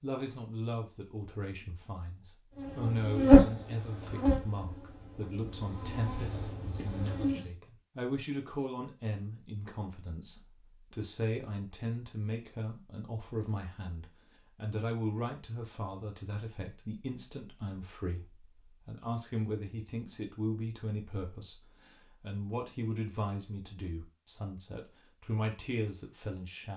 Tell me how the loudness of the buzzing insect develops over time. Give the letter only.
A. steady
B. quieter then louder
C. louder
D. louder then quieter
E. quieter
B.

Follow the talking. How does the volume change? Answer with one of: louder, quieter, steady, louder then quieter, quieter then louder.
steady.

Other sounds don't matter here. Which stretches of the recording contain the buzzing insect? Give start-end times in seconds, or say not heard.
2.5-7.5.